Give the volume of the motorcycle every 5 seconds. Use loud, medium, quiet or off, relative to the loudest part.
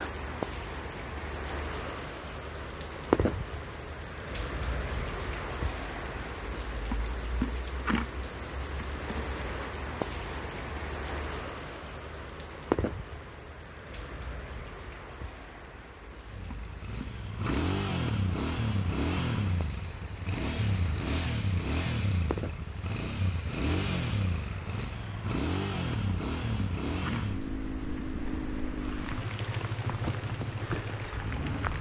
off, off, off, loud, loud, loud, loud.